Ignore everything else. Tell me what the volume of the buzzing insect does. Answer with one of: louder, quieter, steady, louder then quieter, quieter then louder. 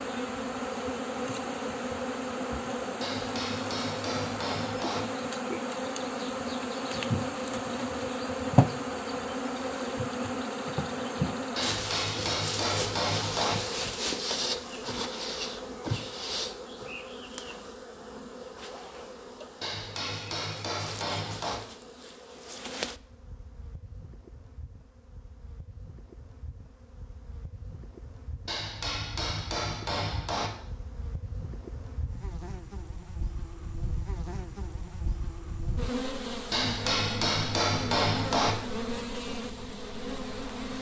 quieter then louder.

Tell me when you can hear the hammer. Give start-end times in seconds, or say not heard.
3.0-5.0, 11.6-13.6, 19.6-21.6, 28.4-30.5, 36.5-38.5.